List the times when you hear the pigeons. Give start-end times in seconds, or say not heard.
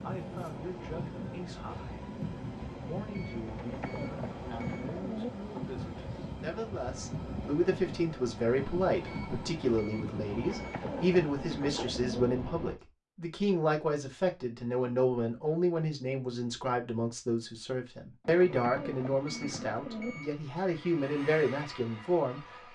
3.4-5.4, 10.4-12.3, 18.2-20.2.